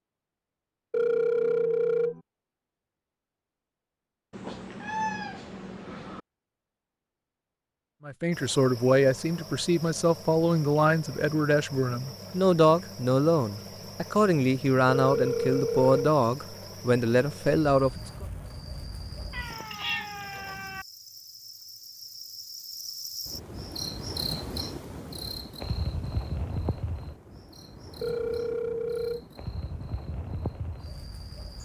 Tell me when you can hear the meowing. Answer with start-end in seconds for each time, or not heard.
4.3-6.2, 19.3-20.9.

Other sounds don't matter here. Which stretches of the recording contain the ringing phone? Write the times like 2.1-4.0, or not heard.
0.9-2.2, 14.9-16.1, 28.0-29.3.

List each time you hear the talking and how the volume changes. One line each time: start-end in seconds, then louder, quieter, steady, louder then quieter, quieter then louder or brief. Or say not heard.
8.1-18.2 steady.